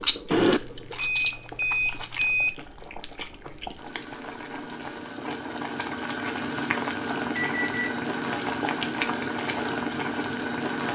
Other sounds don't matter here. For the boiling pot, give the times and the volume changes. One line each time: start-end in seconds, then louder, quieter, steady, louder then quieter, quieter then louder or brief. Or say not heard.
0.0-10.8 louder.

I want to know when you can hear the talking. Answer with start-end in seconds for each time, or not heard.
not heard.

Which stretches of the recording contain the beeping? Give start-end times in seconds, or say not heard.
0.3-2.5, 7.3-7.9.